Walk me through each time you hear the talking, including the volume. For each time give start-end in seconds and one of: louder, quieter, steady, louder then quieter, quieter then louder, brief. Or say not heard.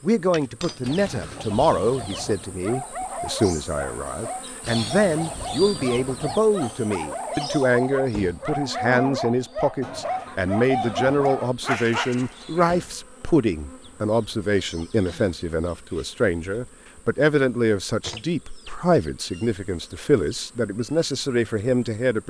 0.0-22.2 steady.